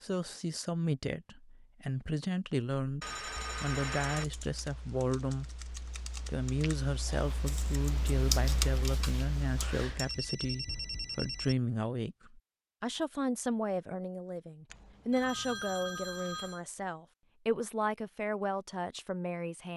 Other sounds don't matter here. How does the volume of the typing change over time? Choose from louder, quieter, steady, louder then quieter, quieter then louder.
louder then quieter.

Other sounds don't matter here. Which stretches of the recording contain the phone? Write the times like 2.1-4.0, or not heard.
3.0-4.2, 9.6-11.6, 14.7-16.6.